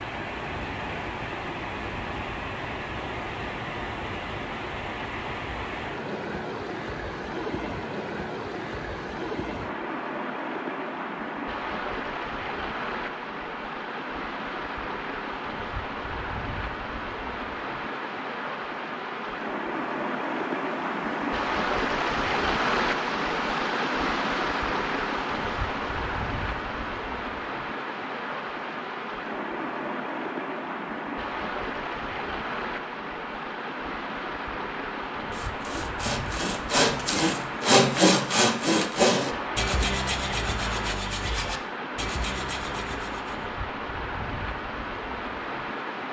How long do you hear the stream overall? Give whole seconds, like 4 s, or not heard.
46 s.